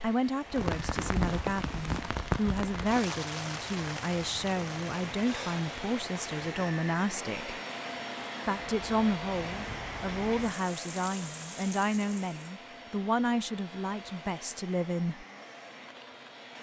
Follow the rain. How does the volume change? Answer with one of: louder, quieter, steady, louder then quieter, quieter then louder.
quieter.